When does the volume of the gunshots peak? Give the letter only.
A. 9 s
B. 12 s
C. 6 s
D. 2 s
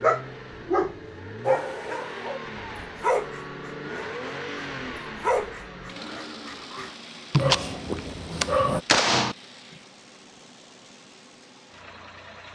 A.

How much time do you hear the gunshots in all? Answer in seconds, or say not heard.
2 s.